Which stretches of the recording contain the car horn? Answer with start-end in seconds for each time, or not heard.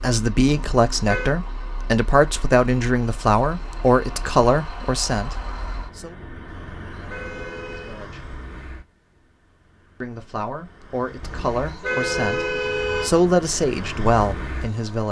0.5-1.4, 6.6-8.1, 11.2-13.1.